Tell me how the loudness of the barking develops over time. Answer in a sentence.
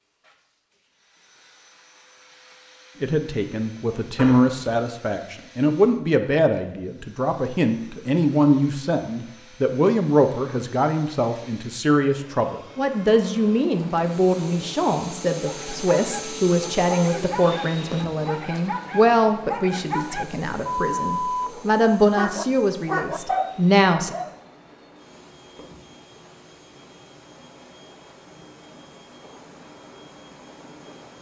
The volume of the barking goes up.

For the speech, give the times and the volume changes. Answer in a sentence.
You can hear the speech from 3.0 to 24.1 s, at a steady volume.